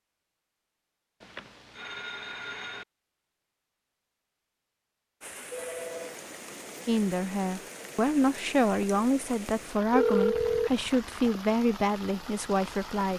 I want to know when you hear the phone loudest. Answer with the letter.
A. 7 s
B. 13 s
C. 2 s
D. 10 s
D.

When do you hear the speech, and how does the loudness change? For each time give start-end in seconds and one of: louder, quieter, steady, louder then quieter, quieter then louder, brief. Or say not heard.
6.8-13.1 steady.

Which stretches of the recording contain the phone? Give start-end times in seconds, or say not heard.
1.2-2.9, 5.5-6.2, 9.4-10.7.